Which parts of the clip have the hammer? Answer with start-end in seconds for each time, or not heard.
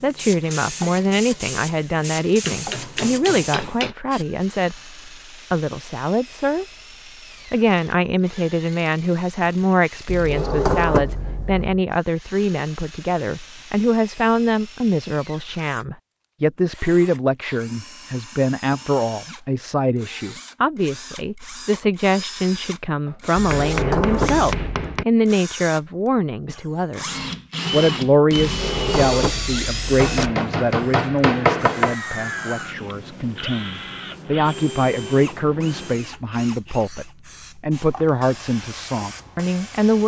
2.5-4.0, 23.1-25.1, 29.9-31.9.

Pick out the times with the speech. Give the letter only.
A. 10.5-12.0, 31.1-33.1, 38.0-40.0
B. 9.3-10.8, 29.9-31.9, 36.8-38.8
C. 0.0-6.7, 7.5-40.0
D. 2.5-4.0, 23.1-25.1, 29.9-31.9
C.